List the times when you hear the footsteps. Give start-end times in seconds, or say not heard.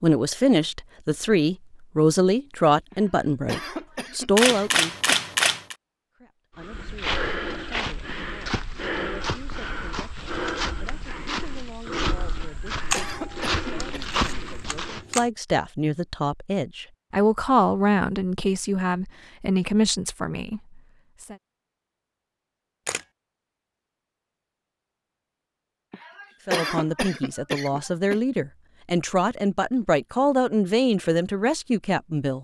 6.6-15.1.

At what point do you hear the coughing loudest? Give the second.
27 s.